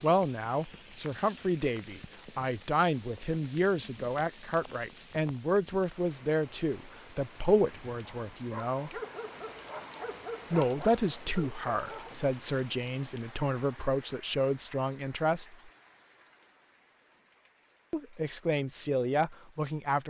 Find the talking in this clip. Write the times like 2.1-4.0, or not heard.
0.0-9.0, 10.5-15.7, 17.9-20.0.